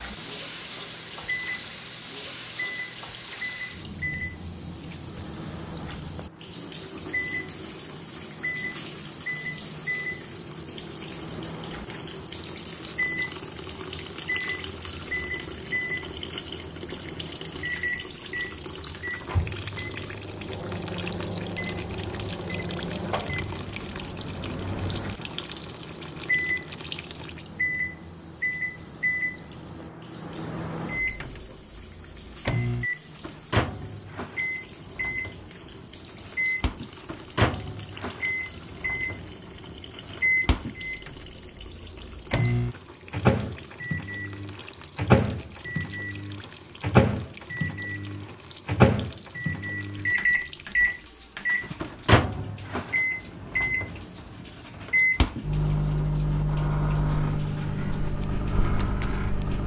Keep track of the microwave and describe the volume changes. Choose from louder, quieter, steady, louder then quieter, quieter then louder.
louder.